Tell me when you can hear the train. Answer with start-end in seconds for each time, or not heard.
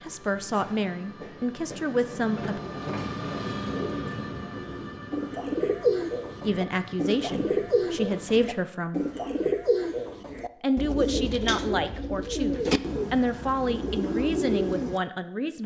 0.0-8.6.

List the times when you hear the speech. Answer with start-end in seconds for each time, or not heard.
0.0-2.6, 6.4-9.1, 10.6-15.6.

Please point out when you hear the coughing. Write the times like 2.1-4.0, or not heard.
not heard.